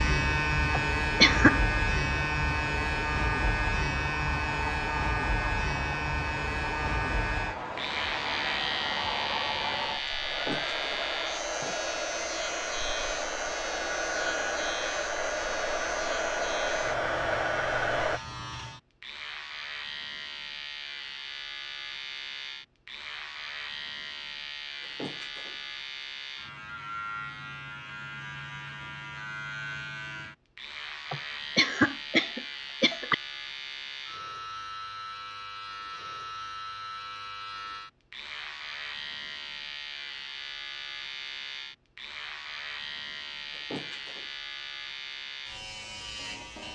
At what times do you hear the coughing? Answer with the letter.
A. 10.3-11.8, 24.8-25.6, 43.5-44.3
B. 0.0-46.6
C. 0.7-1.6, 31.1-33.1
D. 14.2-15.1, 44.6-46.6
C.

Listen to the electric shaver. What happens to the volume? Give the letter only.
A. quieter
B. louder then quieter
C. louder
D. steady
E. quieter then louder
A.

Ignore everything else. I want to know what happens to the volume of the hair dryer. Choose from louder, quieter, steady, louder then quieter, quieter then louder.
louder.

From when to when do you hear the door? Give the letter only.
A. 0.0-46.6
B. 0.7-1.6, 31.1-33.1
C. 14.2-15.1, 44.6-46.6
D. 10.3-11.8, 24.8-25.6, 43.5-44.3
D.